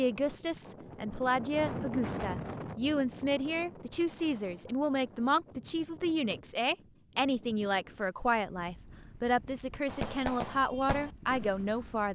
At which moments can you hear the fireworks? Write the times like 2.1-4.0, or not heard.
9.8-12.1.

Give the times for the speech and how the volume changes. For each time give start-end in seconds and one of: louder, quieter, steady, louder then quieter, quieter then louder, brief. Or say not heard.
0.0-12.1 steady.